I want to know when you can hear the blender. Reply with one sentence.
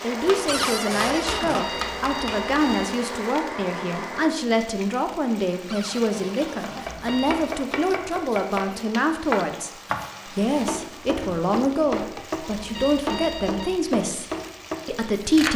The blender can be heard from 0.0 to 4.3 s.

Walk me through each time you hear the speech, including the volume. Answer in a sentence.
You can hear the speech from 0.0 to 14.2 s, at a steady volume; and briefly from 14.8 to 15.5 s.